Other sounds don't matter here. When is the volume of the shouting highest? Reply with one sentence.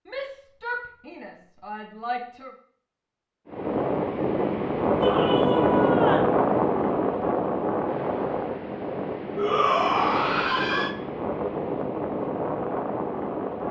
The volume of the shouting peaks at 10 seconds.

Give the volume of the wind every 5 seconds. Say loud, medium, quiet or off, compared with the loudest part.
loud, loud, medium.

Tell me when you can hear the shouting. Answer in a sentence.
You can hear the shouting from 0.1 to 2.5 s, from 5.0 to 6.3 s and from 9.3 to 10.9 s.